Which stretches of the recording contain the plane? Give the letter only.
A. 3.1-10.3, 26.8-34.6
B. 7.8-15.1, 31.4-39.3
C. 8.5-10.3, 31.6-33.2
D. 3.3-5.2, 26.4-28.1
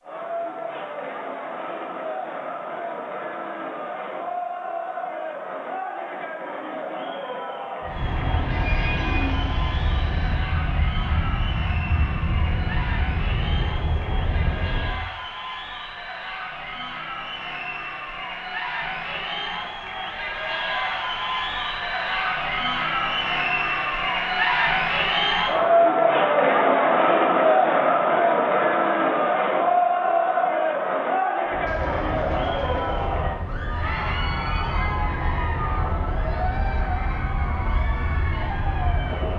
B.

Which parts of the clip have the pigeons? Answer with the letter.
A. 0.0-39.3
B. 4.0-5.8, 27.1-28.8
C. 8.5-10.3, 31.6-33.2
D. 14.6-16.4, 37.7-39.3
C.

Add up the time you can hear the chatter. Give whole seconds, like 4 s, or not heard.
39 s.